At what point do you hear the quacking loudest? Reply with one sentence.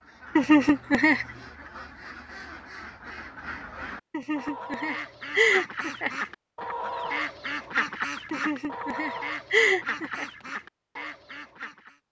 The volume of the quacking peaks at 8 seconds.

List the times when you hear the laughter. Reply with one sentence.
The laughter can be heard from 0.3 to 1.4 s, from 4.1 to 6.1 s and from 8.3 to 10.2 s.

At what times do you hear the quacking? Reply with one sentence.
You can hear the quacking from 0.0 to 12.0 s.